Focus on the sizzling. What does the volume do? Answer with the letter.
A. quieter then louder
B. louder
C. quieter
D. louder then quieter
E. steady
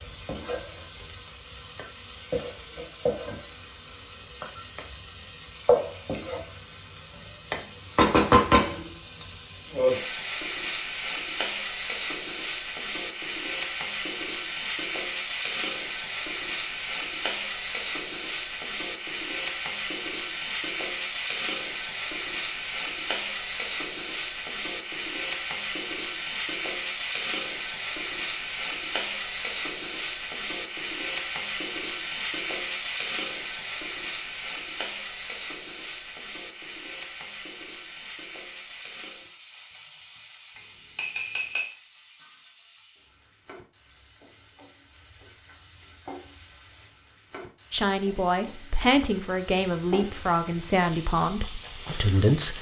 C.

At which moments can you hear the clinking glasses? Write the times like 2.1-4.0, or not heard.
40.5-41.7.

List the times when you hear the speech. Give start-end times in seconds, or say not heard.
47.7-52.5.